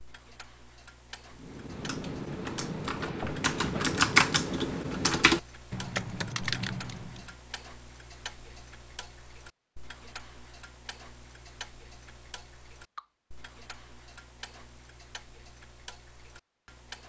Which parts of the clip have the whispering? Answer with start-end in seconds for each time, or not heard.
not heard.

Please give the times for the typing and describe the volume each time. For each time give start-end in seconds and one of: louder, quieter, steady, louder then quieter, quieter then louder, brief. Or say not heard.
1.4-7.3 louder then quieter.